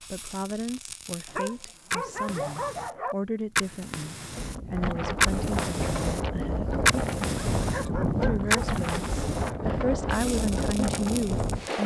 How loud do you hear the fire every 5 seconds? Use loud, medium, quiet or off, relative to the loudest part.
medium, loud, quiet.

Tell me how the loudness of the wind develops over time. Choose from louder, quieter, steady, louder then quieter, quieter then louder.
steady.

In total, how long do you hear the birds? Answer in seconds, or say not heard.
not heard.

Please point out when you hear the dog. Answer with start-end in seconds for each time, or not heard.
1.2-3.1, 7.1-8.8.